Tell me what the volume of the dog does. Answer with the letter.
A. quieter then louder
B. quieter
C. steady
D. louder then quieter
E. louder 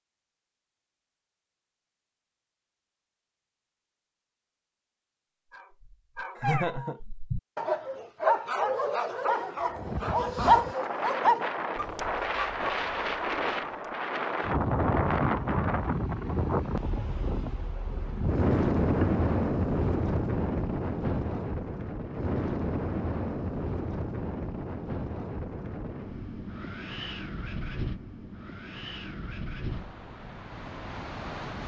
D.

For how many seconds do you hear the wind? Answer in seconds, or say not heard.
22 s.